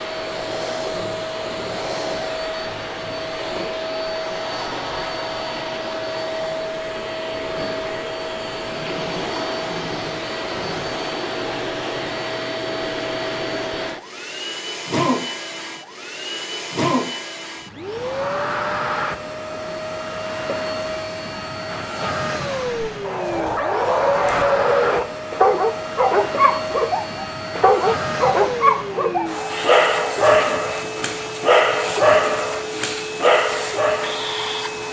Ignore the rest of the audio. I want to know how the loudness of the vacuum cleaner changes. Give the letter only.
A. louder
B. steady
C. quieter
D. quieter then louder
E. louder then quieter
B.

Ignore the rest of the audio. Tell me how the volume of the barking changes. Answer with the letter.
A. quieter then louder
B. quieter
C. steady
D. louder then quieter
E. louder
C.